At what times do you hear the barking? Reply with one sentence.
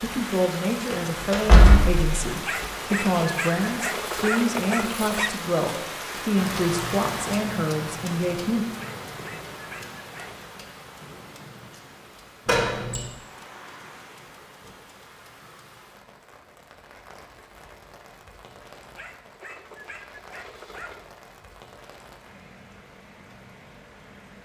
You can hear the barking from 2.5 to 5.4 s, from 8.8 to 10.5 s and from 18.9 to 21.1 s.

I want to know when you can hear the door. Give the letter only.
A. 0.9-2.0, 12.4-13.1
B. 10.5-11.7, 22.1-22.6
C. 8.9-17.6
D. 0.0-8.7
A.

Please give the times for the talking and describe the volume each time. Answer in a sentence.
You can hear the talking from 0.0 to 8.7 s, at a steady volume.